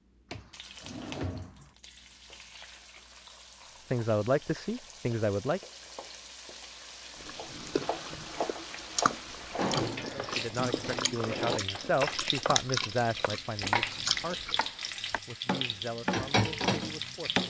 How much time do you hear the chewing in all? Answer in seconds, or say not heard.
7 s.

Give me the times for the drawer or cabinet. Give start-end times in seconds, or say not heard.
0.3-1.8, 9.6-11.6.